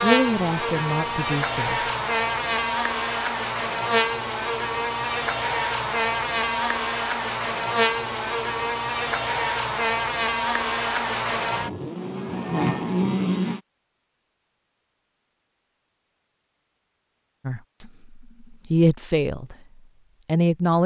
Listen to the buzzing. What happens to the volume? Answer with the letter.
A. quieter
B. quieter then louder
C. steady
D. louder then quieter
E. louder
C.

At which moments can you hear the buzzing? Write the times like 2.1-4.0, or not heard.
0.0-13.6.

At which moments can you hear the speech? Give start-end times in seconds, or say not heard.
0.0-1.8, 17.4-19.6, 20.2-20.8.